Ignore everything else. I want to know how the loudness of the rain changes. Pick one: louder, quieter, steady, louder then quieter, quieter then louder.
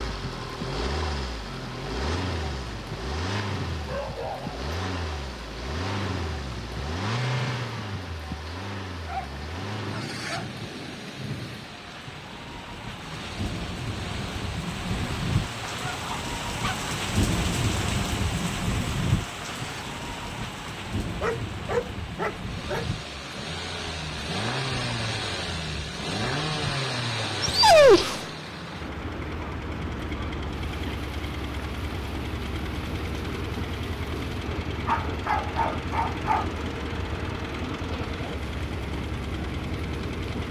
louder then quieter.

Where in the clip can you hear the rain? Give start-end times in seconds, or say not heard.
0.0-40.4.